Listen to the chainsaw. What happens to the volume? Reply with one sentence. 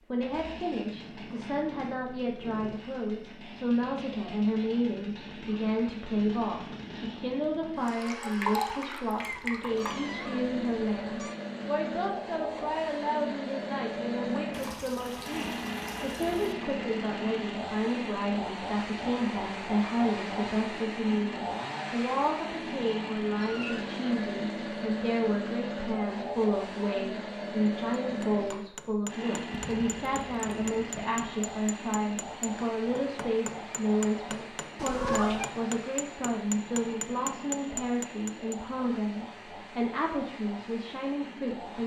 The loudness of the chainsaw goes up, then down.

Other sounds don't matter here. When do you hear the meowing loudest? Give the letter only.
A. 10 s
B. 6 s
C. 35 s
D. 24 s
C.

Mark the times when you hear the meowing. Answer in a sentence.
The meowing can be heard from 9.2 to 11.3 s, from 23.4 to 23.9 s and from 34.8 to 35.5 s.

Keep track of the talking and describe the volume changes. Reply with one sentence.
The loudness of the talking stays about the same.